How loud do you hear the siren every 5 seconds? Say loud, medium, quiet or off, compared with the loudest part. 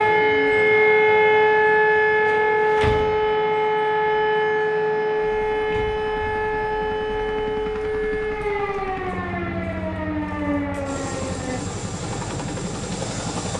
loud, medium, medium.